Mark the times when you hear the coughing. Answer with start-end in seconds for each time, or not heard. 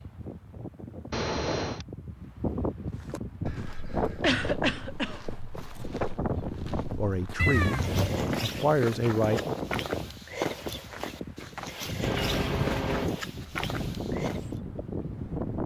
4.2-5.2, 12.0-13.2.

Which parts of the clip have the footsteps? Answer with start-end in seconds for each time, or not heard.
3.0-14.6.